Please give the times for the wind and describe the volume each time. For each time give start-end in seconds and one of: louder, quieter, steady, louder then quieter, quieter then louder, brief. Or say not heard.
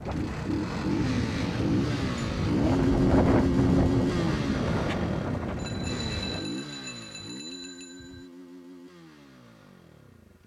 0.0-6.4 louder then quieter.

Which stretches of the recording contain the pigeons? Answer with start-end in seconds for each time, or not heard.
not heard.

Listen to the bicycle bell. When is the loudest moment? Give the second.
1 s.